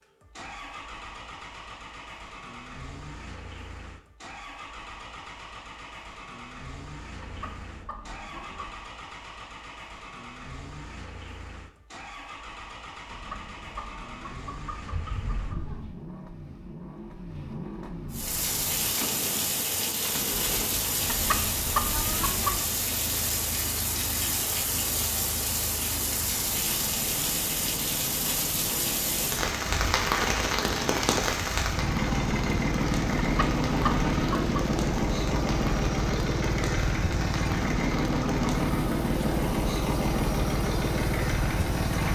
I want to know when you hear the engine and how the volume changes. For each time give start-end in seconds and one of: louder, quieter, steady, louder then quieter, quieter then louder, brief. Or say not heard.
0.0-42.0 louder.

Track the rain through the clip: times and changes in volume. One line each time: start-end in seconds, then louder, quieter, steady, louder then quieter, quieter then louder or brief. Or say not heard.
18.1-42.0 quieter.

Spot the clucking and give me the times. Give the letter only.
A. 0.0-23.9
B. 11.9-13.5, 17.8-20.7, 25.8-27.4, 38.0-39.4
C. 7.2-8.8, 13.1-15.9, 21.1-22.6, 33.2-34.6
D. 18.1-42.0
C.